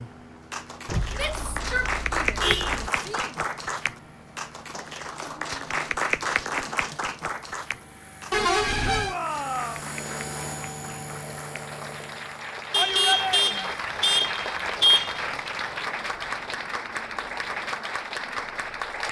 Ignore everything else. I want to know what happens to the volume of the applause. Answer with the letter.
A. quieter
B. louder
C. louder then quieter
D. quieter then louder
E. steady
D.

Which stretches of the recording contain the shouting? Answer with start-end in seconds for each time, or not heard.
1.1-3.4, 8.8-9.9, 12.8-13.8.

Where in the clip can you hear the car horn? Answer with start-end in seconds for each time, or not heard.
0.8-2.9, 8.3-9.2, 12.7-15.3.